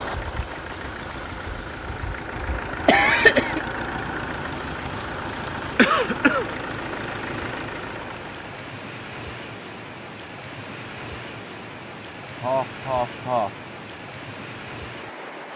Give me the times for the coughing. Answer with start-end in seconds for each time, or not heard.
2.9-3.6, 5.4-6.5, 12.4-13.5.